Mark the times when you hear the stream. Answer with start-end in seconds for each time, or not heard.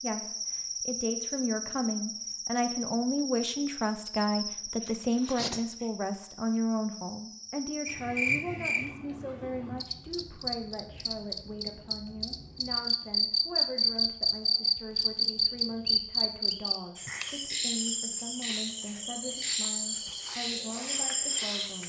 not heard.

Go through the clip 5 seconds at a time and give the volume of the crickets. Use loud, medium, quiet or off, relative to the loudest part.
medium, medium, loud, loud, loud.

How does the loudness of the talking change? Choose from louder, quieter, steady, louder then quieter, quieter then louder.
quieter.